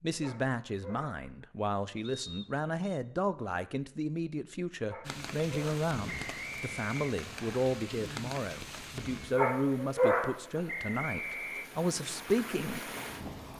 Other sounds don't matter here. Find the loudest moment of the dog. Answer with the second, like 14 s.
10 s.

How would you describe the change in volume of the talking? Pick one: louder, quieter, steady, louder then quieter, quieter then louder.
steady.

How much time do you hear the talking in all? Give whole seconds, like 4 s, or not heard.
13 s.